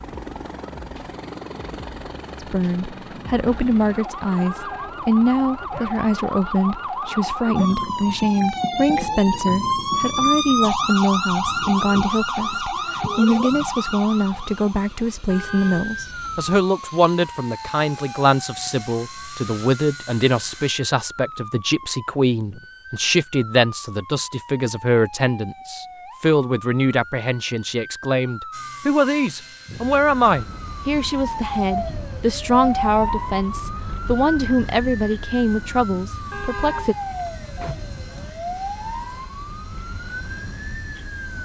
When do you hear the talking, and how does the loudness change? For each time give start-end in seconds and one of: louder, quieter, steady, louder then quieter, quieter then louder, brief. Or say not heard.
2.4-37.0 steady.